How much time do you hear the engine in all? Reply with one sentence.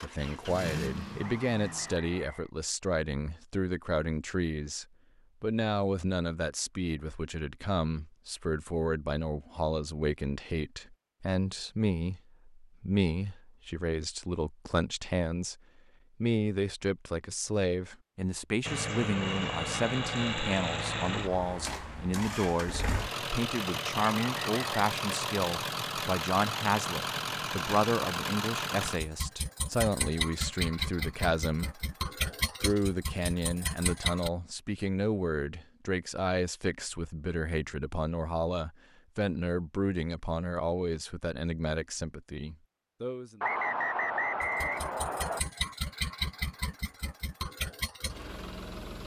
You can hear the engine for 22 seconds altogether.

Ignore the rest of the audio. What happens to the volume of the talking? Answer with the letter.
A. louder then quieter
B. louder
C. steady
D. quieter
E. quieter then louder
C.